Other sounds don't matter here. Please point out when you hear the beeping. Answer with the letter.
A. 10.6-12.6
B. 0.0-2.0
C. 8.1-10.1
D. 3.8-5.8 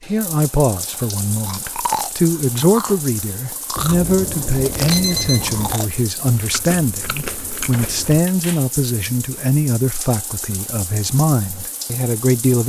D.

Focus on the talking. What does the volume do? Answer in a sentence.
The volume of the talking stays about the same.